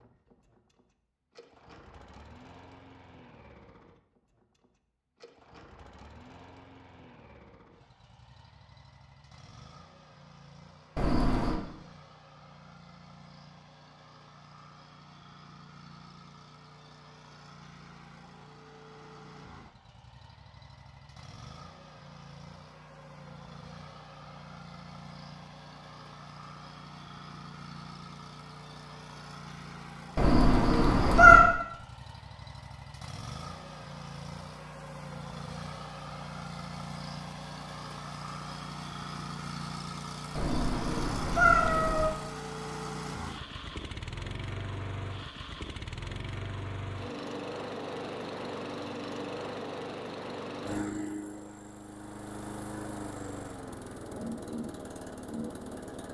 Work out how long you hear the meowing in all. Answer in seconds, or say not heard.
4 s.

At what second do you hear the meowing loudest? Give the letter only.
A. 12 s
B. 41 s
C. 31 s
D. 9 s
C.